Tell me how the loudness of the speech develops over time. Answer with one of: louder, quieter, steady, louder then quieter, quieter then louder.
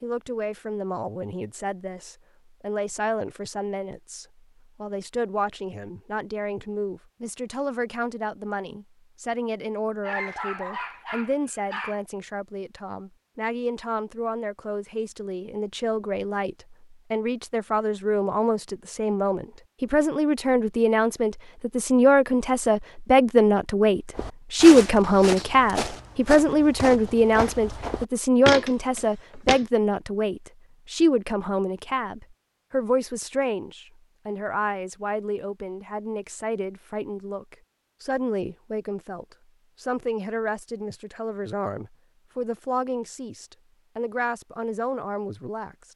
louder then quieter.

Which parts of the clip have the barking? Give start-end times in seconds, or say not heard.
10.0-12.0.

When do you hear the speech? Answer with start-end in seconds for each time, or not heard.
0.0-45.8.